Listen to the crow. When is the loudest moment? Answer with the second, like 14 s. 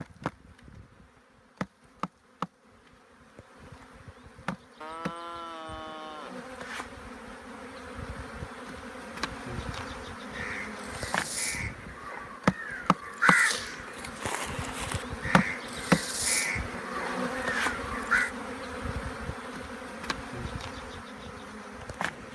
13 s.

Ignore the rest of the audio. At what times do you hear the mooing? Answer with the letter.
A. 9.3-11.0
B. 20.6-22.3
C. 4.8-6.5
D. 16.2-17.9
C.